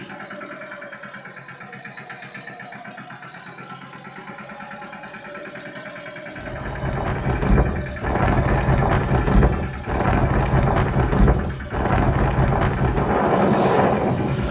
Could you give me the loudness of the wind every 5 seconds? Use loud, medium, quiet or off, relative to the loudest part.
off, loud, loud.